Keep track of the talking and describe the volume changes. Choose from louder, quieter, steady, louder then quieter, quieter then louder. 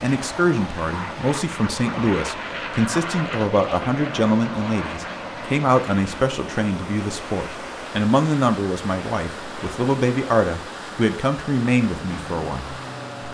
steady.